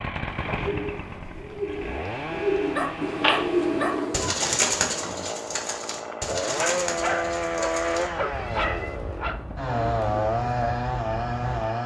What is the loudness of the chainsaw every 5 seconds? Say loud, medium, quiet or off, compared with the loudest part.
medium, loud, loud.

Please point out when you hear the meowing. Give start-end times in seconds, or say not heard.
3.0-4.3, 7.0-9.0.